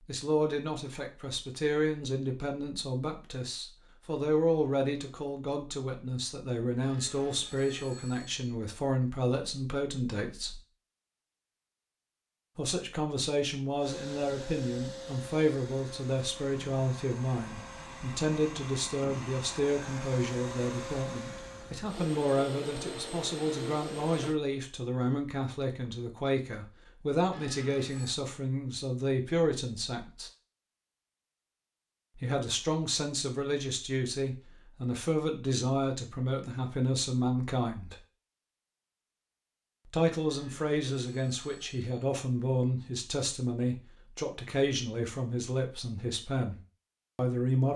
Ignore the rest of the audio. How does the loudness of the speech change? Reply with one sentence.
The volume of the speech stays about the same.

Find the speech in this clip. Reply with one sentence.
The speech can be heard from 0.1 to 10.6 s, from 12.6 to 30.3 s, from 32.1 to 38.0 s and from 39.9 to 47.7 s.